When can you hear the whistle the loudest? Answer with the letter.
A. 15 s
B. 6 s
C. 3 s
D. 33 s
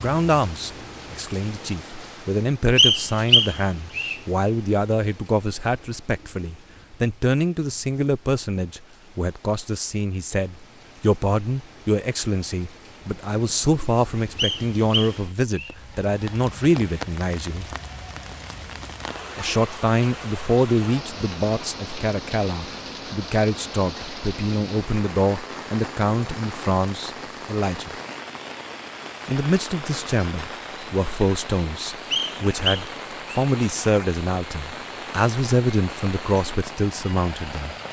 C.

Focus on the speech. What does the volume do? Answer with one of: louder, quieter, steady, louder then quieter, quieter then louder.
steady.